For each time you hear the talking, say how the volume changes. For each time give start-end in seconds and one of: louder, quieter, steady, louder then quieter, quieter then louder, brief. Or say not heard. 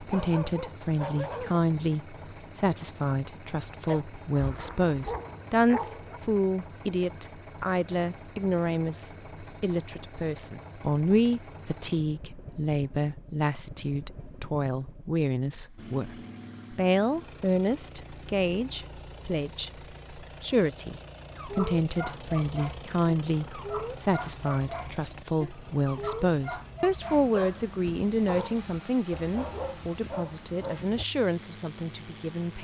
0.0-32.5 steady.